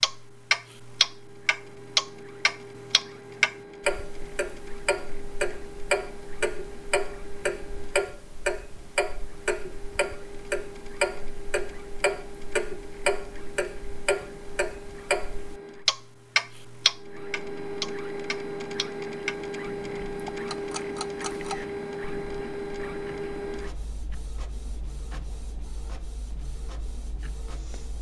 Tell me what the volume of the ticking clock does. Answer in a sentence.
The loudness of the ticking clock goes down.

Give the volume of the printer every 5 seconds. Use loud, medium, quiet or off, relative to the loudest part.
medium, medium, medium, loud, loud, quiet.